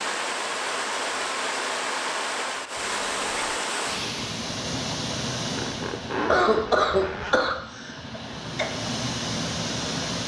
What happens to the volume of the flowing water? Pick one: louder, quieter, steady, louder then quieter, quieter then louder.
quieter then louder.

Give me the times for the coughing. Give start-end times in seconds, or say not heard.
6.2-8.7.